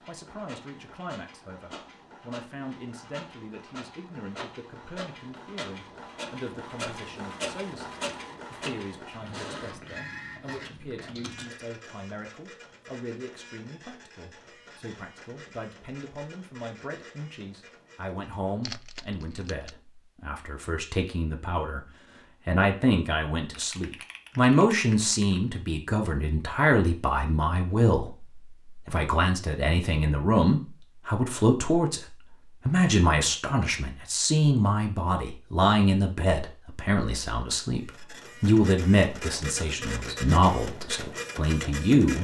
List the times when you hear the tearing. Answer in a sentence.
The tearing can be heard from 18.6 to 19.8 s.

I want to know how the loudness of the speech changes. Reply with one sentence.
The loudness of the speech goes up.